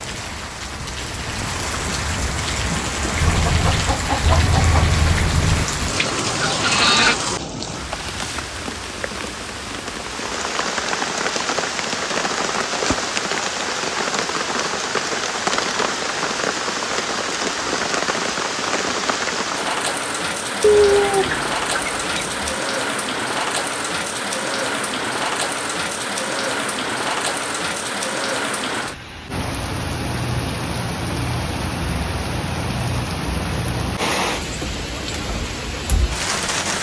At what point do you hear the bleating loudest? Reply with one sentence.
The loudest moment of the bleating is at 7 seconds.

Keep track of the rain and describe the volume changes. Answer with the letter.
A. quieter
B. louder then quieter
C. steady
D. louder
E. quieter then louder
C.